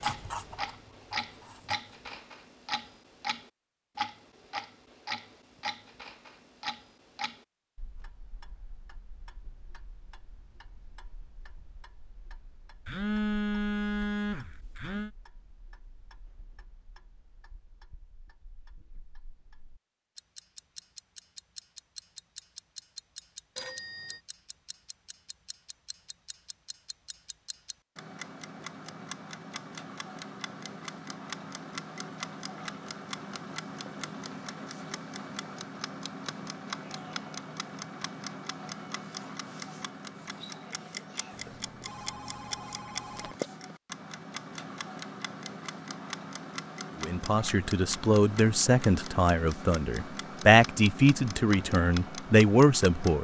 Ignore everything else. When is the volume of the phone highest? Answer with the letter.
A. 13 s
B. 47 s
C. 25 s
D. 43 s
A.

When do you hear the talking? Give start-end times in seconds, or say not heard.
47.0-53.2.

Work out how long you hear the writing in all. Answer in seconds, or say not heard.
2 s.